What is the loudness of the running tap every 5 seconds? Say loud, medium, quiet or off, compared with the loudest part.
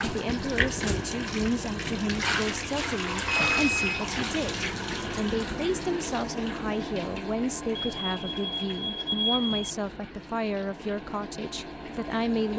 loud, medium, medium.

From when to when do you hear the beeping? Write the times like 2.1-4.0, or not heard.
3.2-4.0, 7.8-9.7.